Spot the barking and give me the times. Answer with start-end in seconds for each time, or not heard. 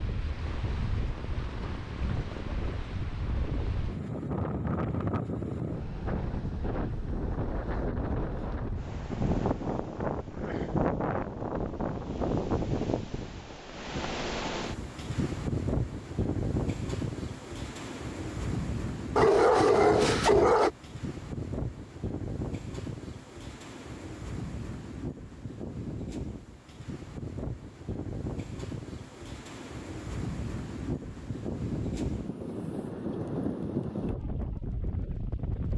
19.1-20.7.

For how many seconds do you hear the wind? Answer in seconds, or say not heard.
36 s.